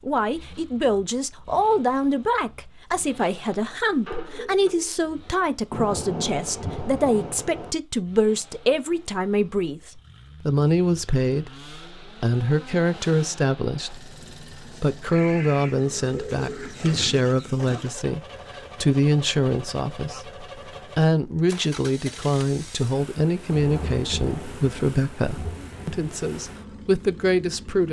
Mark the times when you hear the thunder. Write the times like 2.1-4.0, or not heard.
5.7-7.8, 23.5-26.1.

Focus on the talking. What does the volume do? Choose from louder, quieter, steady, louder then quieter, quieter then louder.
steady.